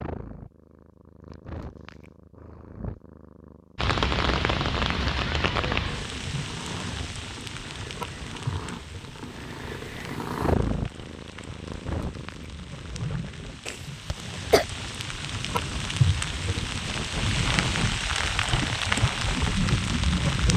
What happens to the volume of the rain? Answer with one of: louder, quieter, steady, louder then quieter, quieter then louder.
quieter then louder.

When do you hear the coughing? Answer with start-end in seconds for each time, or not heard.
13.7-14.7.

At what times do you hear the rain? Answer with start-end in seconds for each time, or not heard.
3.8-20.5.